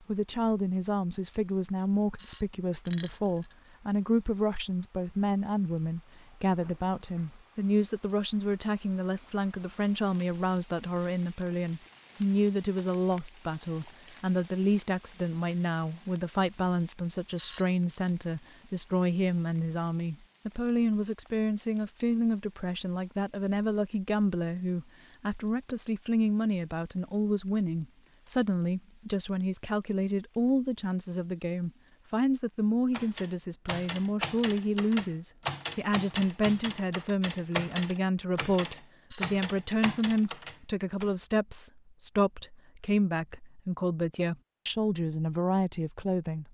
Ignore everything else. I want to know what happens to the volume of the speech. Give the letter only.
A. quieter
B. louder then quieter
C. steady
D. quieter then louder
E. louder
C.